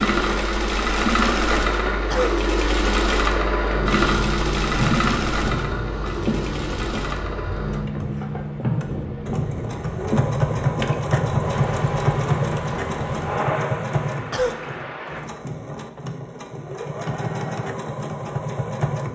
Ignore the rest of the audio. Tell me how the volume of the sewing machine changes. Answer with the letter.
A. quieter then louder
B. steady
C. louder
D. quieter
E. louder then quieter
D.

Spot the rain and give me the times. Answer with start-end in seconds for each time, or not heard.
0.1-15.2.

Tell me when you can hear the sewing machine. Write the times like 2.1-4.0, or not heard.
0.0-19.0.